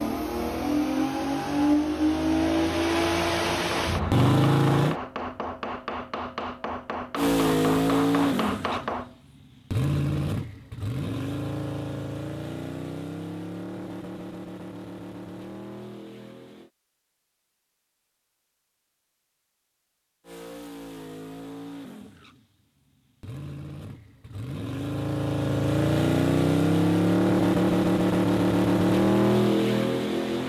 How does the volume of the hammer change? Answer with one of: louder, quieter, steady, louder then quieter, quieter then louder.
steady.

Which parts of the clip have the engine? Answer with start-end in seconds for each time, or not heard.
0.0-5.0, 7.2-16.7, 20.2-30.4.